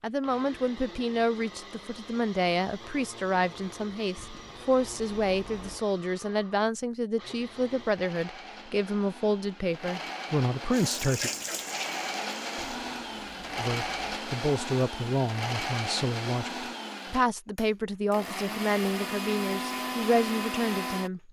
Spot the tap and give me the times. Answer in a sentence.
You can hear the tap from 10.7 to 12.8 s.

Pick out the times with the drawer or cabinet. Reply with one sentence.
You can't hear the drawer or cabinet here.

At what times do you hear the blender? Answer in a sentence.
You can hear the blender from 0.0 to 21.1 s.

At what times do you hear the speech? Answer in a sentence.
The speech can be heard from 0.0 to 11.3 s and from 13.6 to 21.2 s.